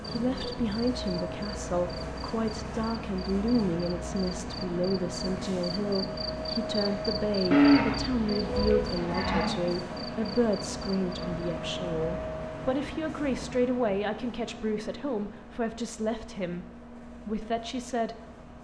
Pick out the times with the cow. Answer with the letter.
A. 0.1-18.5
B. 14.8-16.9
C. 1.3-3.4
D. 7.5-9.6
D.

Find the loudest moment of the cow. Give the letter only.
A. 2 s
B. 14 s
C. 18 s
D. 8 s
D.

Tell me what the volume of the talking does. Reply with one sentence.
The loudness of the talking stays about the same.